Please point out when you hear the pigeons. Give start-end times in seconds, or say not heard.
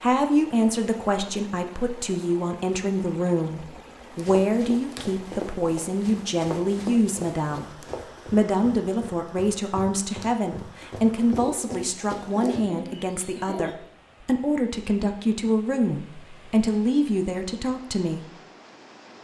11.3-13.8.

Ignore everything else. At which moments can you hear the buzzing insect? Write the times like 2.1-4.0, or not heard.
not heard.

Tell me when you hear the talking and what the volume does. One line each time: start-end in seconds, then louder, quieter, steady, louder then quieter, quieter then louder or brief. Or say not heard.
0.0-18.2 steady.